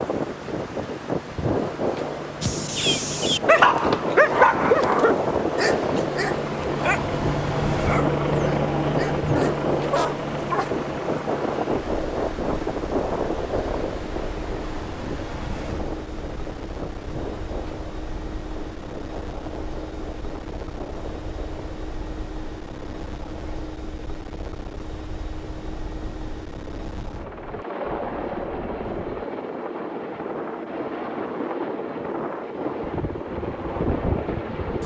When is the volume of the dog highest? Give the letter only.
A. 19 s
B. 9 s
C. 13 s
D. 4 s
D.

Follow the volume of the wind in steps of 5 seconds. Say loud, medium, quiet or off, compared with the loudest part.
loud, loud, loud, medium, quiet, quiet, medium.